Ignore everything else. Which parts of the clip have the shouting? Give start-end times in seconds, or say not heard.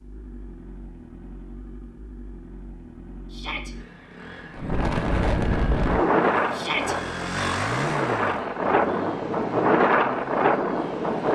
3.3-3.8, 6.5-7.0.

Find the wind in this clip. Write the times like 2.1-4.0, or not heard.
4.5-11.3.